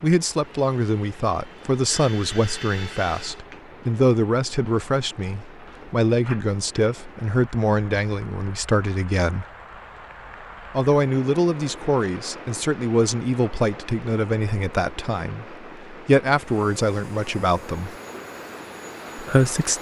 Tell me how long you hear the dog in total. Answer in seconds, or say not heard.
not heard.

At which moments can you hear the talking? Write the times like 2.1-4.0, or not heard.
0.0-9.4, 10.8-17.9, 19.1-19.7.